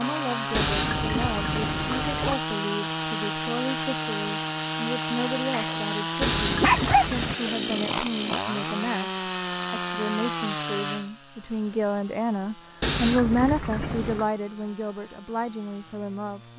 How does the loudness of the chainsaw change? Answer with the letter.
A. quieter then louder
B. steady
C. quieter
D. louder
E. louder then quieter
C.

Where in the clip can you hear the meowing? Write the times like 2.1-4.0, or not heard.
0.5-2.4, 6.2-7.3, 12.8-14.3.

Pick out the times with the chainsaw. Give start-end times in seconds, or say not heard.
0.0-16.5.